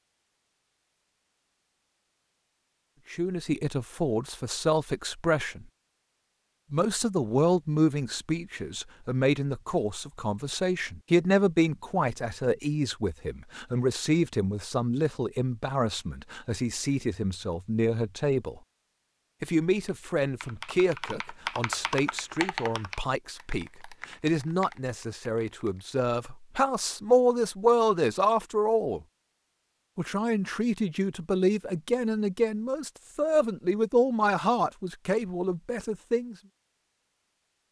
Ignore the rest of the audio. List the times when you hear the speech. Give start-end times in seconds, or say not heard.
3.1-5.7, 6.7-18.6, 19.4-29.0, 29.9-36.4.